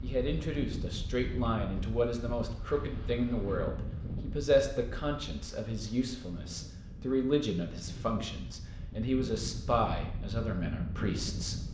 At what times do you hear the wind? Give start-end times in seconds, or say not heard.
0.0-11.6.